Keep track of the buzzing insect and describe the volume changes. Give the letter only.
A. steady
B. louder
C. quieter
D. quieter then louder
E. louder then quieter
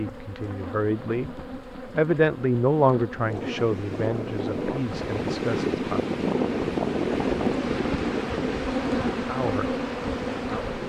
B.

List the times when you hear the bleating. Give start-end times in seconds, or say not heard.
not heard.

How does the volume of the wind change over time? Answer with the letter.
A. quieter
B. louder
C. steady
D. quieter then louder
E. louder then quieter
E.